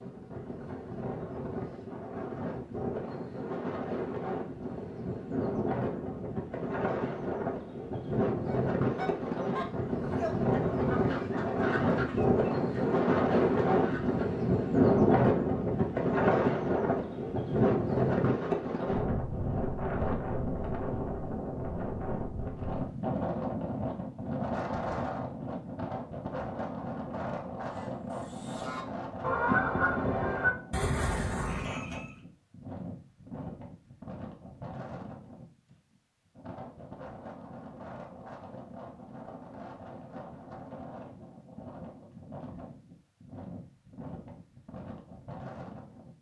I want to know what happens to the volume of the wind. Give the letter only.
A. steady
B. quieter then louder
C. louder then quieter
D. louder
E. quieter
C.